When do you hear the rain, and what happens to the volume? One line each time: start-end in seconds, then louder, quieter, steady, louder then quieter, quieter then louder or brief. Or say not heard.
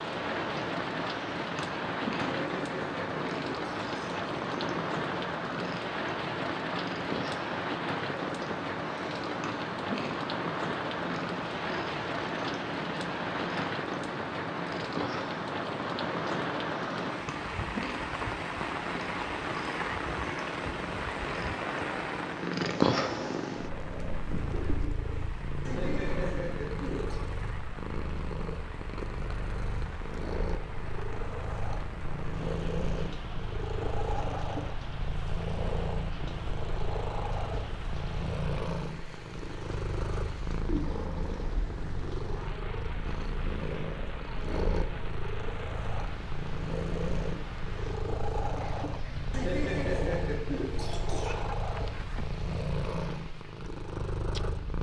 0.0-54.7 quieter.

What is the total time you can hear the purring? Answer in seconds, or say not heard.
55 s.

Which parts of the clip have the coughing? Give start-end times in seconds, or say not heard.
2.3-4.2, 25.6-27.2, 49.3-51.4.